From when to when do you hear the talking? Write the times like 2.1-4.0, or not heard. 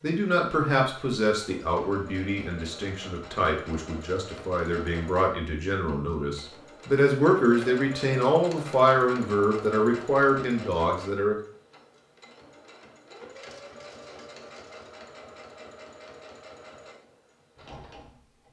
0.0-11.3.